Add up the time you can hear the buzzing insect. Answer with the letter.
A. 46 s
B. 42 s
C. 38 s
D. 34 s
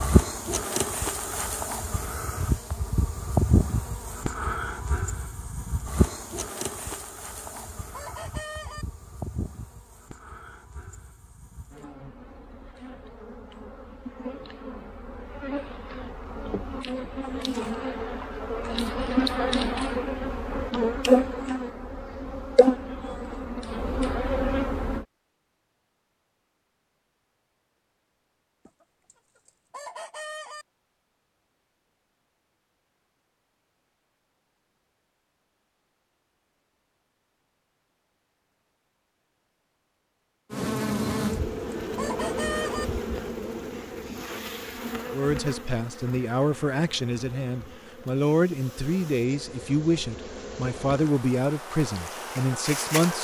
C.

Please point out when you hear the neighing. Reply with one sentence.
You can't hear the neighing here.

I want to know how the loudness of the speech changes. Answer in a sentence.
The volume of the speech stays about the same.